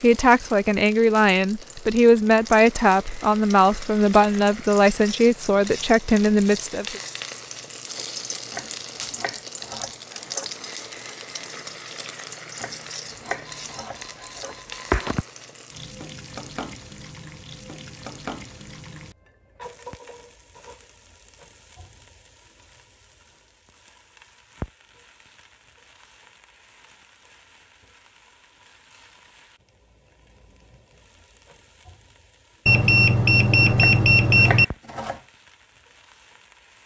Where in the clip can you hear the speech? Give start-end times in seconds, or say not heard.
0.0-7.0.